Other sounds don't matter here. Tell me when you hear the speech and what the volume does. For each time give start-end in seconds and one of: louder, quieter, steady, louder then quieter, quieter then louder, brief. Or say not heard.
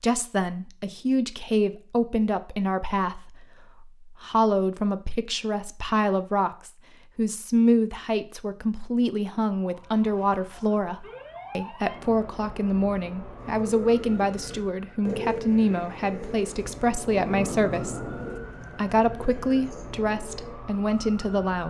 0.0-18.1 steady
18.8-21.6 brief.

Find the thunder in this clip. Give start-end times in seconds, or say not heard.
17.1-18.4.